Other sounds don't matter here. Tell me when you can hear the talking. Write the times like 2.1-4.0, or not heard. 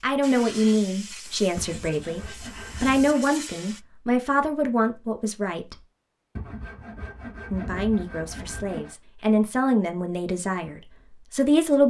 0.0-5.8, 7.5-11.8.